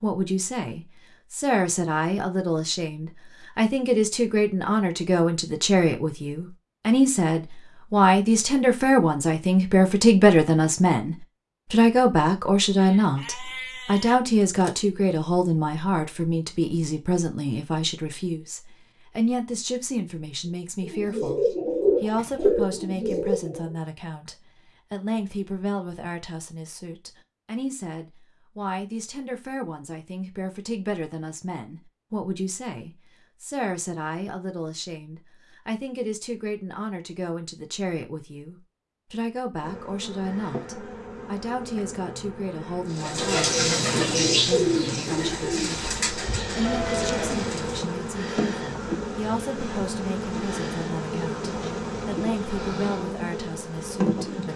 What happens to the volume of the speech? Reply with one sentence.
The loudness of the speech goes down.